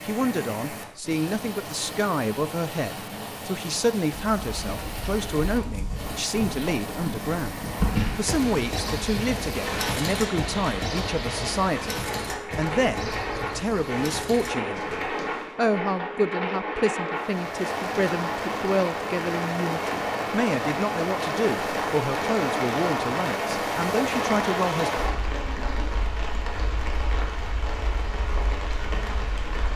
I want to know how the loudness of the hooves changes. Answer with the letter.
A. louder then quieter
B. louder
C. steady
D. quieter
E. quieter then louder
A.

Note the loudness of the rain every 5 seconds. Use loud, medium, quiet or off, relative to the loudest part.
medium, medium, medium, loud, loud, medium.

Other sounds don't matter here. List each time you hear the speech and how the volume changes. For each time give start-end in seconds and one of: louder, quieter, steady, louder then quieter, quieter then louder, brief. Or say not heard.
0.1-24.9 steady.